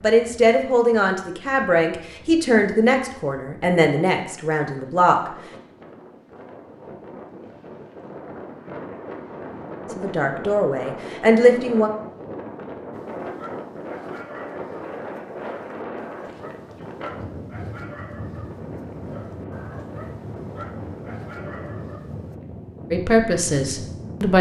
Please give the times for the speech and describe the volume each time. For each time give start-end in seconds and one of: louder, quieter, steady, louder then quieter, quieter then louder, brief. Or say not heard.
0.0-5.3 quieter
9.9-11.9 brief
22.9-24.3 brief.